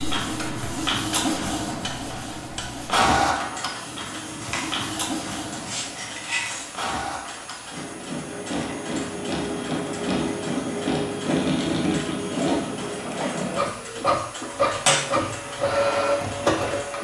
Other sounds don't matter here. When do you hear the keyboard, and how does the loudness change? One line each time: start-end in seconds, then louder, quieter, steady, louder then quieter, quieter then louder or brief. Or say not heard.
not heard.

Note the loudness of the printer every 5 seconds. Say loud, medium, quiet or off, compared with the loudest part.
loud, medium, loud, loud.